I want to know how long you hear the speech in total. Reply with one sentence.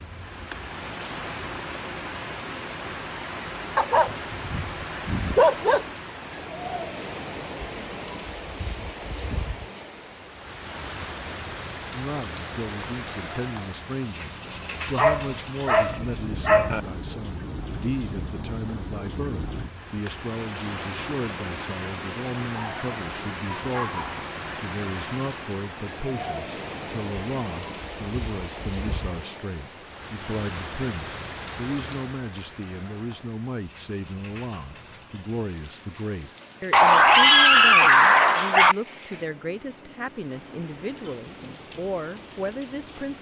You can hear the speech for 31 seconds altogether.